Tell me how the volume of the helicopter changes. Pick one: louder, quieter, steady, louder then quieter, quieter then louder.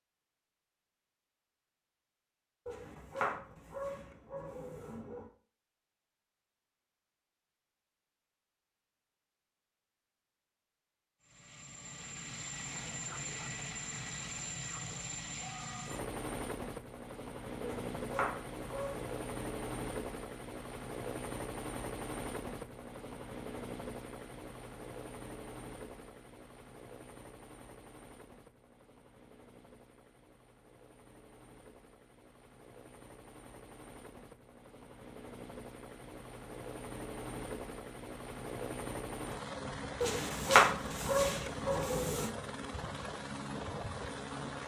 quieter then louder.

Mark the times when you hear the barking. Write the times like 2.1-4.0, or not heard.
2.6-5.2, 17.6-19.1, 40.0-42.3.